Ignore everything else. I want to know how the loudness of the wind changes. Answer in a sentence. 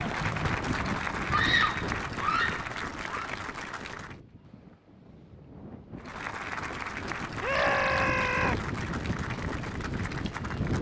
The volume of the wind goes down, then up.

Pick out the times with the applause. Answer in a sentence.
You can hear the applause from 0.0 to 4.2 s and from 6.0 to 10.7 s.